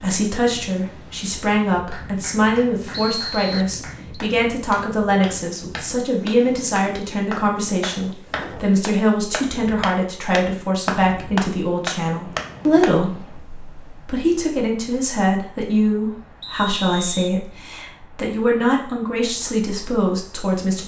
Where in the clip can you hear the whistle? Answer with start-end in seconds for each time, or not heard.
2.9-4.2, 16.4-17.3.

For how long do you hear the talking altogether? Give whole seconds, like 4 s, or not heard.
21 s.